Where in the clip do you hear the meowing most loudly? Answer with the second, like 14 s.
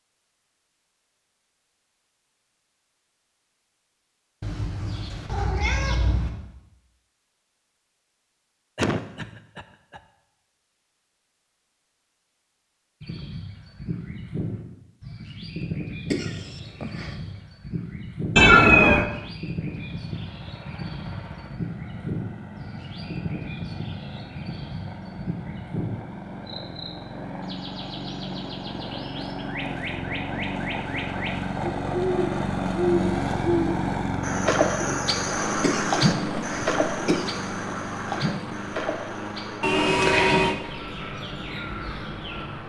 19 s.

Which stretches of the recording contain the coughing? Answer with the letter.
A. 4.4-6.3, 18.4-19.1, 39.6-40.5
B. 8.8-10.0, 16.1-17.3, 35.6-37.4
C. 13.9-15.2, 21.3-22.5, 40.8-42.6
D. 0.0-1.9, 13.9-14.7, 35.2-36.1
B.